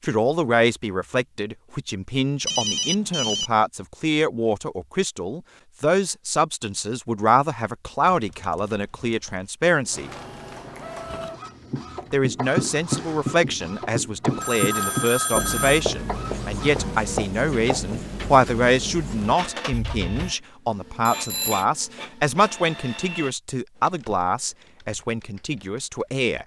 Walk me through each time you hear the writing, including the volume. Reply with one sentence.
The writing can be heard from 11.1 to 20.4 s, getting quieter.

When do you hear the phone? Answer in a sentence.
The phone can be heard from 2.5 to 3.5 s, from 14.4 to 15.8 s and from 21.1 to 21.6 s.